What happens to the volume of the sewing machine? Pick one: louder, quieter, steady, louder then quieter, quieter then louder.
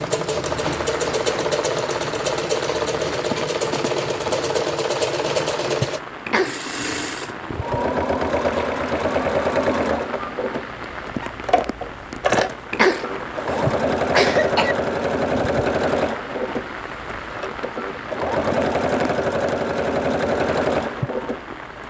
steady.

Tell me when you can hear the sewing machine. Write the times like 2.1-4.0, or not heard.
0.0-21.8.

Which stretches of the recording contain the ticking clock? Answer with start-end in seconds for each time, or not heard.
not heard.